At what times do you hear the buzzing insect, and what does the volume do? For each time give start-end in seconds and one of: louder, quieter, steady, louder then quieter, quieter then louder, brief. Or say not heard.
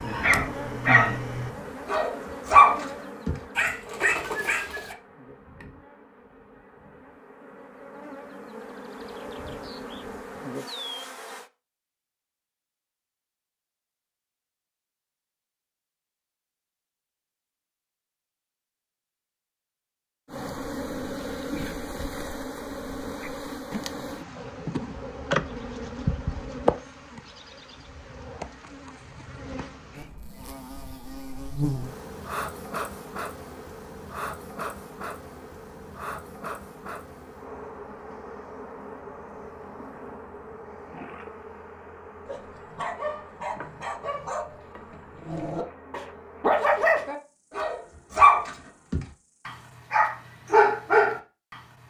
0.0-11.5 quieter then louder
20.2-49.6 quieter.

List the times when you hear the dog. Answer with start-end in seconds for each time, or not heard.
0.0-5.0, 42.2-51.6.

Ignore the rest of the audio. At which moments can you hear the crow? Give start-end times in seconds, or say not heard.
not heard.